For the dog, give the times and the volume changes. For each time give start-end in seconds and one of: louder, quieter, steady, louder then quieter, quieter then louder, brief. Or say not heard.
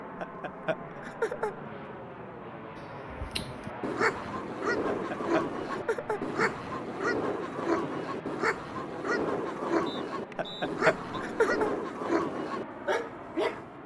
2.8-13.7 steady.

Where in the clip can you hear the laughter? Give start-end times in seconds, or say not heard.
0.2-1.6, 4.8-6.5, 10.3-11.7.